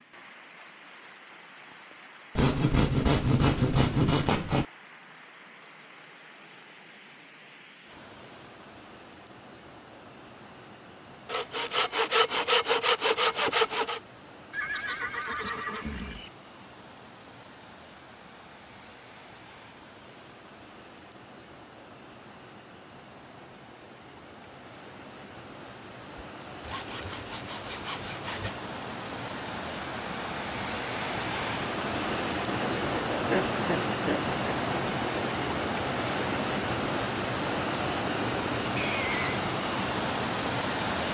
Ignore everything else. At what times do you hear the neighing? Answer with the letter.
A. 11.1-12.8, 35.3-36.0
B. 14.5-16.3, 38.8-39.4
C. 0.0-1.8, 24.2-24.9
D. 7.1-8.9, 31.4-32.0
B.